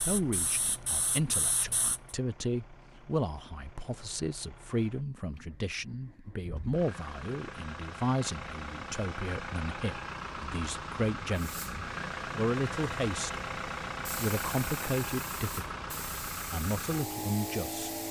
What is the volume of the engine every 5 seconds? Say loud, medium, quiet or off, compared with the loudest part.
quiet, medium, loud, loud.